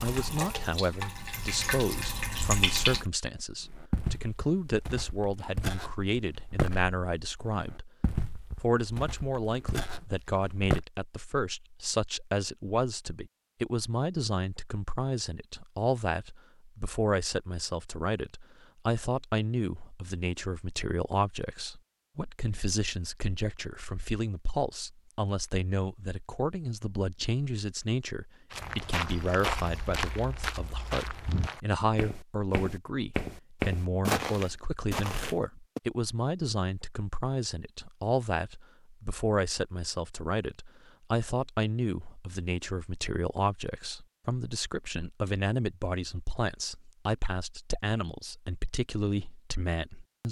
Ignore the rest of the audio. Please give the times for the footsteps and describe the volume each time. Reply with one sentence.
The footsteps can be heard from 3.6 to 10.8 s, getting louder then quieter; and from 28.5 to 35.8 s, getting quieter then louder.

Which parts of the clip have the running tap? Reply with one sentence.
The running tap can be heard from 0.0 to 3.0 s.